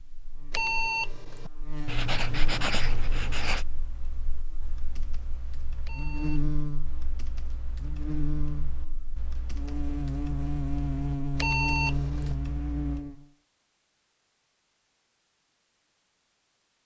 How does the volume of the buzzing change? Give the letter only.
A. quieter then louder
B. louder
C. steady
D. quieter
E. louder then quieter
A.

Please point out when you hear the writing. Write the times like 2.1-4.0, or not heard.
1.9-3.6.